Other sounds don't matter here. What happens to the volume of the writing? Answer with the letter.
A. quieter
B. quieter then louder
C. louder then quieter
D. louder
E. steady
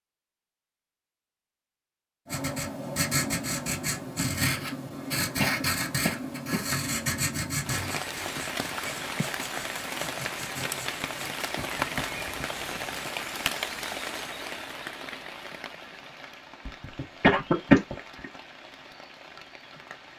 A.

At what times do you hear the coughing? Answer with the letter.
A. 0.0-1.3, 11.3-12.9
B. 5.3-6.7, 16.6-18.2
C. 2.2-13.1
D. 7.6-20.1
B.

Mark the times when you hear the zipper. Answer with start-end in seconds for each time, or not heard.
not heard.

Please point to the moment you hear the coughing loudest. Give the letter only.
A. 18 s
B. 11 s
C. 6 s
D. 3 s
A.